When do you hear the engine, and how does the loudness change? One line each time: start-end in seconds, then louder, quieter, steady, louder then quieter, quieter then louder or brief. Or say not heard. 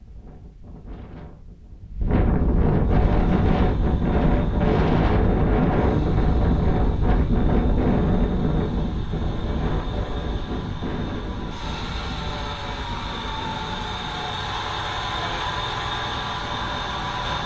3.0-17.4 louder.